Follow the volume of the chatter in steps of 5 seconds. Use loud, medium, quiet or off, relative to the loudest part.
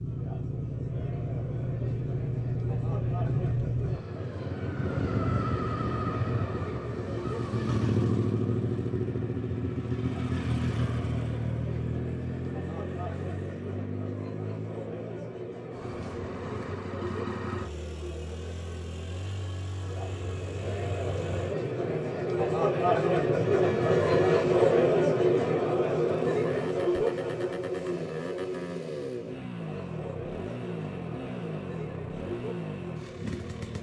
quiet, quiet, quiet, quiet, loud, loud, quiet.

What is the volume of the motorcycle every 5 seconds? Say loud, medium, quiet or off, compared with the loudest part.
loud, loud, loud, medium, medium, medium, medium.